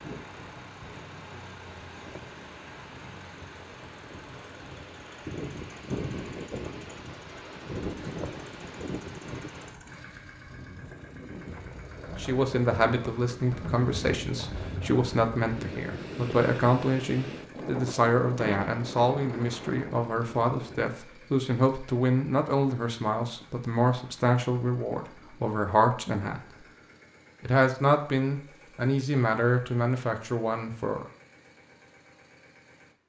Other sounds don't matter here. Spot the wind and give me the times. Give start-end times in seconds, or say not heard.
0.0-20.9.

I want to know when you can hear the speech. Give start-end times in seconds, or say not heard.
12.2-26.6, 27.4-31.1.